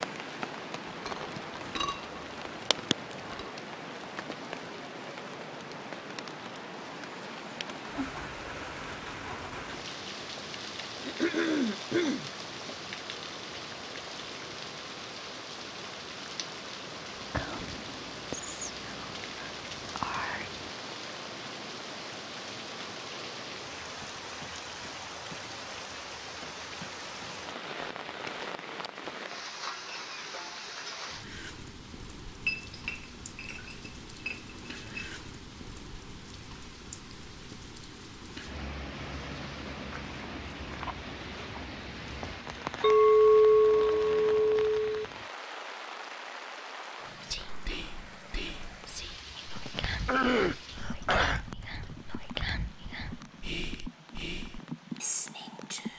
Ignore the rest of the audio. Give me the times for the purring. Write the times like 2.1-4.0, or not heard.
not heard.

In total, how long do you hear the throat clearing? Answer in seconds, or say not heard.
4 s.